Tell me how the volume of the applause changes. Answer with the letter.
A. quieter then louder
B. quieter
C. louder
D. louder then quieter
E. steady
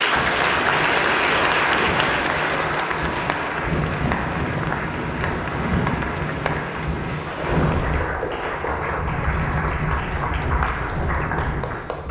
B.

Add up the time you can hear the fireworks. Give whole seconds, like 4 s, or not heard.
not heard.